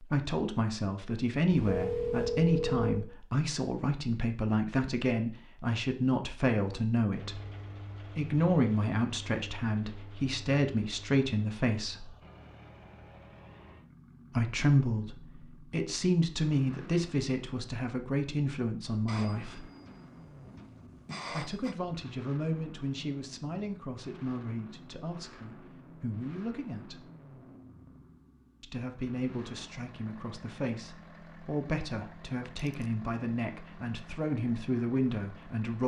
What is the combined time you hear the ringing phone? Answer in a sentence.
You can hear the ringing phone for 5 seconds altogether.